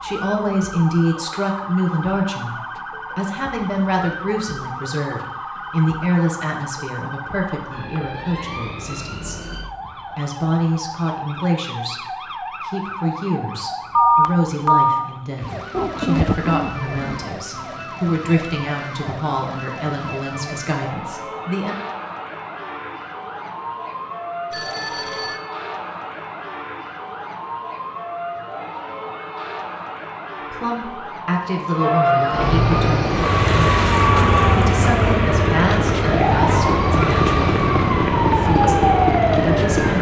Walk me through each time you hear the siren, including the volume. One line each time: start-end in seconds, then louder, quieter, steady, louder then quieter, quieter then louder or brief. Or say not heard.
0.0-39.9 louder.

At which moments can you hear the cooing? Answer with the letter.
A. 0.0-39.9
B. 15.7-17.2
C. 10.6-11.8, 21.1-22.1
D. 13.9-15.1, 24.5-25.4
B.